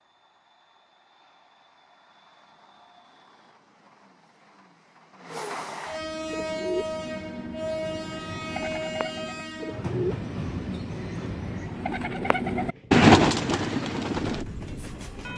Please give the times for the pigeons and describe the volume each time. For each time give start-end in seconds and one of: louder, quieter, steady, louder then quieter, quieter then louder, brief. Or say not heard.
6.3-14.4 louder.